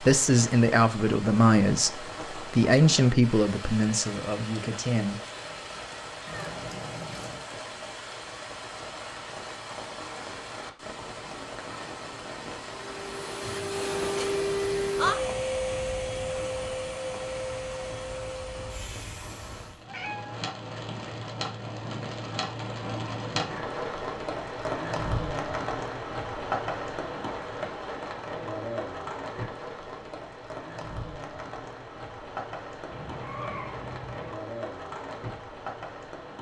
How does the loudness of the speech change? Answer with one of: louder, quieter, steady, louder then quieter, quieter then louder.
quieter.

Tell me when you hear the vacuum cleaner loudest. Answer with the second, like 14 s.
15 s.